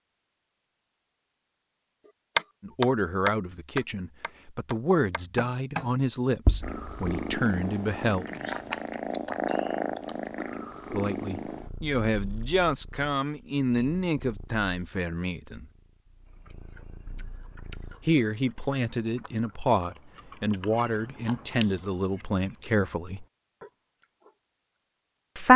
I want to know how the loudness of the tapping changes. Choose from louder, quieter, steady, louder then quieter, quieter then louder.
quieter then louder.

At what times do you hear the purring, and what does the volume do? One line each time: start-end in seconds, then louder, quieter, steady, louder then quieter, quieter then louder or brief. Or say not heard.
6.6-18.1 quieter.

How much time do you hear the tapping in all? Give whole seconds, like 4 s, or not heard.
5 s.